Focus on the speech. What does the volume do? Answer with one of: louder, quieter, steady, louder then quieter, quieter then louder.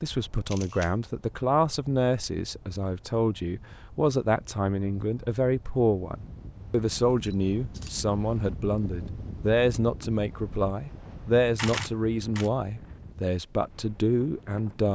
steady.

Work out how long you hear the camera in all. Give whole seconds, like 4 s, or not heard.
2 s.